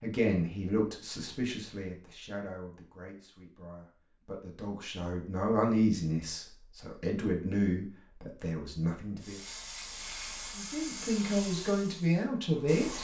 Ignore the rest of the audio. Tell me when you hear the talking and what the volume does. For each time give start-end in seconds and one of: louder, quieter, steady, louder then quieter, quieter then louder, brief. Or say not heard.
0.0-9.4 quieter then louder
10.6-12.9 brief.